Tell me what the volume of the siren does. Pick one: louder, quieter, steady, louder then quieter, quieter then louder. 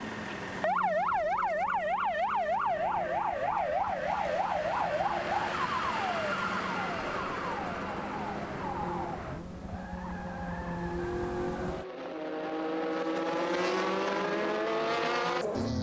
quieter.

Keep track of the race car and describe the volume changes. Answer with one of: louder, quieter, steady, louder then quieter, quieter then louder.
louder.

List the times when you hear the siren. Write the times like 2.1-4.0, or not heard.
0.0-9.4.